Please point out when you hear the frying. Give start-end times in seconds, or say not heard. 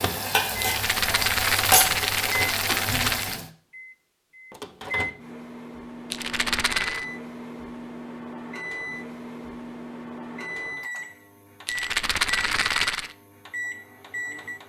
0.0-3.5.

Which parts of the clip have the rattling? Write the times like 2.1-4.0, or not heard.
0.6-3.4, 6.1-7.0, 11.7-13.2.